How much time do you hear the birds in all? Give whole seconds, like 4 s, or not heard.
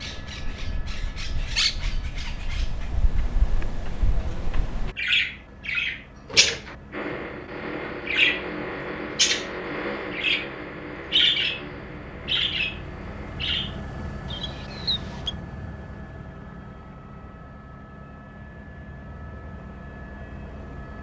15 s.